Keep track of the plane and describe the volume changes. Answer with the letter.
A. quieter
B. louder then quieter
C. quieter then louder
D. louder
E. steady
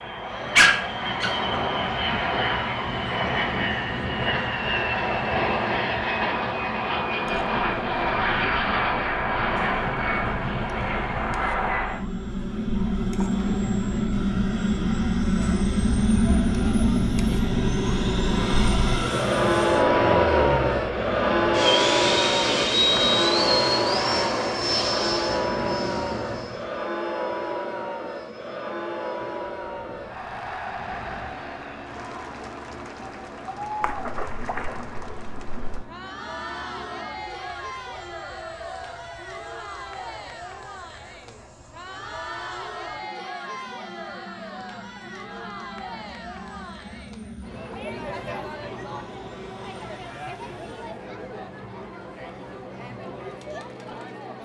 A.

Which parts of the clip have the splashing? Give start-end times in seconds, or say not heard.
33.8-35.8.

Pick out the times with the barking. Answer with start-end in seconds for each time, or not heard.
0.6-1.4.